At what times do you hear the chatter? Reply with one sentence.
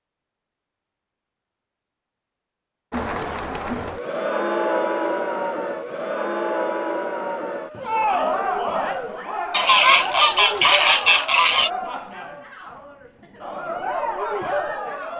You can hear the chatter from 2.9 to 15.1 s.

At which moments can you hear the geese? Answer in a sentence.
The geese can be heard from 9.5 to 11.7 s.